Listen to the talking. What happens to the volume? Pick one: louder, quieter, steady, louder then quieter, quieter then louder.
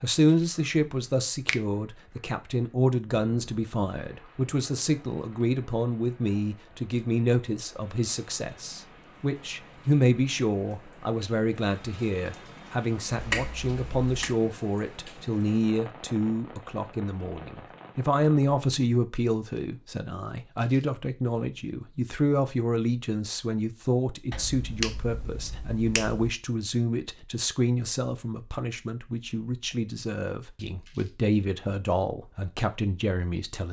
steady.